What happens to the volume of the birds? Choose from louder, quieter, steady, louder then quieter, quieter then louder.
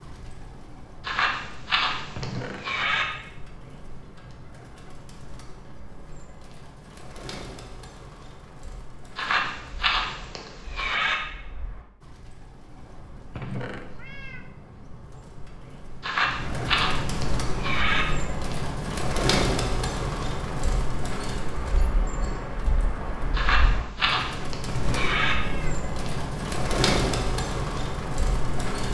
louder.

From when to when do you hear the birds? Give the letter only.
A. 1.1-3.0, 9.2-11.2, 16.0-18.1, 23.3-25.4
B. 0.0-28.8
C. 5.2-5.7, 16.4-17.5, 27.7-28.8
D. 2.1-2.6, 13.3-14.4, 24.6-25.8
B.